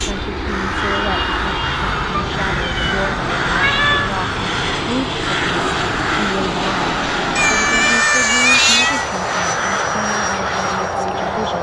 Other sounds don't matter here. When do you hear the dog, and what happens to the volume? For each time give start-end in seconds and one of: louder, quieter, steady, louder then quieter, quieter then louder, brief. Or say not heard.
not heard.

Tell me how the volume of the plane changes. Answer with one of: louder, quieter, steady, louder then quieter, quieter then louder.
steady.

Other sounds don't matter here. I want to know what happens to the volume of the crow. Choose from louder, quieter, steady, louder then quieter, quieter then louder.
steady.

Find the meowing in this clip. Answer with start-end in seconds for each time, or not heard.
2.1-4.1, 7.3-9.1.